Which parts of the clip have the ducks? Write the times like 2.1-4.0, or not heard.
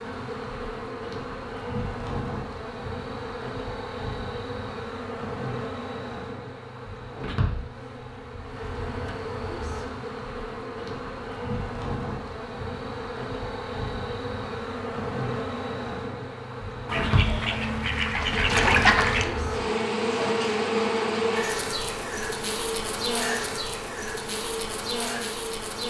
16.9-19.3.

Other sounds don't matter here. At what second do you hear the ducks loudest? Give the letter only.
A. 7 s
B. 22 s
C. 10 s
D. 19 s
D.